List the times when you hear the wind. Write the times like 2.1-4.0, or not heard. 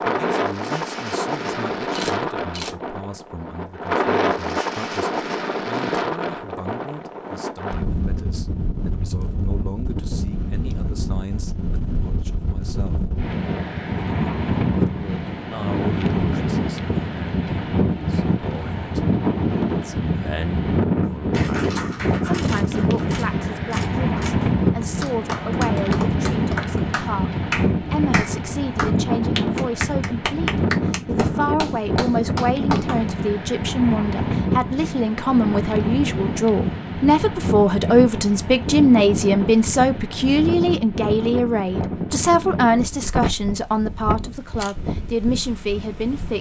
0.0-46.3.